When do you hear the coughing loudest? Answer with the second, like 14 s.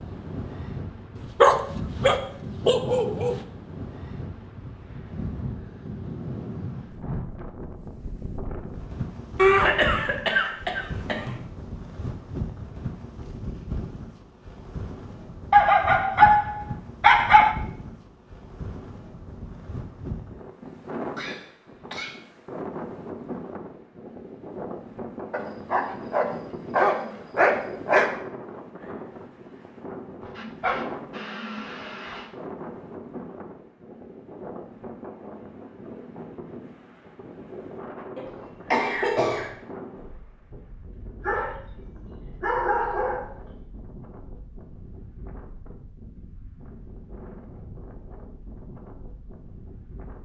10 s.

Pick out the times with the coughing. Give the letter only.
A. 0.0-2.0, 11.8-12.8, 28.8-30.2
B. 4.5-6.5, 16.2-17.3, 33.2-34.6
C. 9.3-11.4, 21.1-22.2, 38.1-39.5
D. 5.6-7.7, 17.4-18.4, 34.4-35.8
C.